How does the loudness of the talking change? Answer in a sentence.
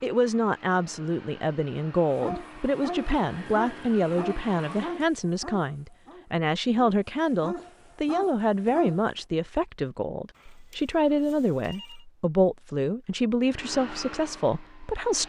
The volume of the talking stays about the same.